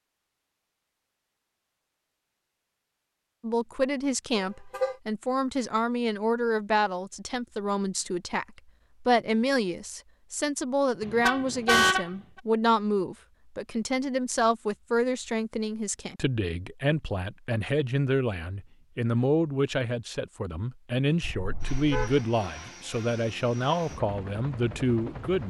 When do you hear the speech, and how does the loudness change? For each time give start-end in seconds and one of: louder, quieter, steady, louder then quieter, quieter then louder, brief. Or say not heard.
3.4-25.4 steady.